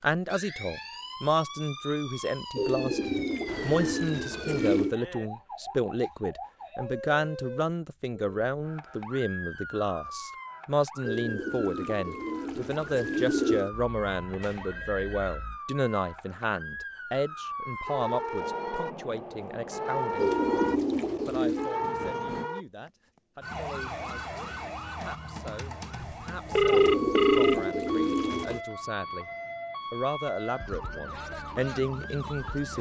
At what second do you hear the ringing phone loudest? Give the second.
27 s.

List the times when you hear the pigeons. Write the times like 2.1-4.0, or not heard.
2.5-5.0, 11.1-13.7, 20.1-21.8, 26.7-28.6.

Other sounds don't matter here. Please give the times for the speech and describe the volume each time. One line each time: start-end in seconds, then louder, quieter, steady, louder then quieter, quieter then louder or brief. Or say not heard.
0.0-29.3 quieter
29.9-32.7 brief.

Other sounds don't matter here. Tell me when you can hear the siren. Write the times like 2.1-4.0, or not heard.
0.0-32.7.